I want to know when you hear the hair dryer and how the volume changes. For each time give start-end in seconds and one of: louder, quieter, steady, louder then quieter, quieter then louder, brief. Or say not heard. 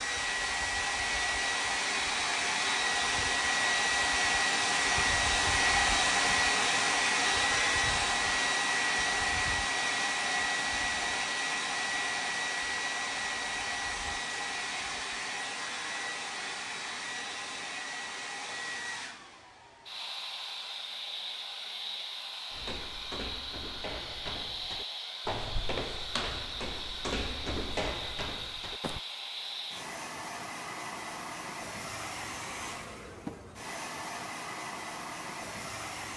0.0-36.1 quieter.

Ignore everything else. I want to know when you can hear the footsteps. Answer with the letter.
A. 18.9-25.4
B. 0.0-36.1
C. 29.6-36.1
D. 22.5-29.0
D.